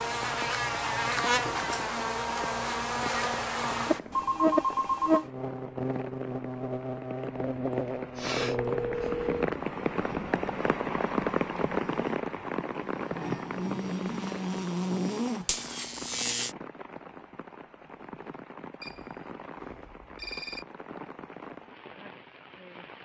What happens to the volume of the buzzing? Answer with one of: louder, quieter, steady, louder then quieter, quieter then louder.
quieter then louder.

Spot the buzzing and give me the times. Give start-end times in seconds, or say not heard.
0.0-16.6.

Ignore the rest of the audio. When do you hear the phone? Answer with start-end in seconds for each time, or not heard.
4.1-5.2, 8.3-9.5, 18.8-20.6.